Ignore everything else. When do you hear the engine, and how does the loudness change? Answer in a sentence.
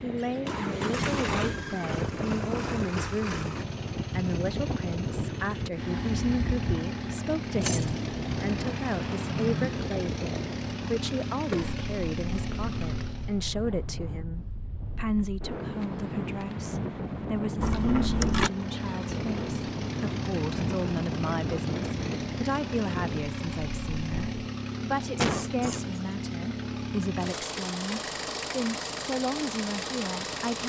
You can hear the engine from 0.0 to 13.4 s, at a steady volume; and from 18.3 to 30.6 s, at a steady volume.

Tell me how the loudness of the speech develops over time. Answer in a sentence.
The loudness of the speech stays about the same.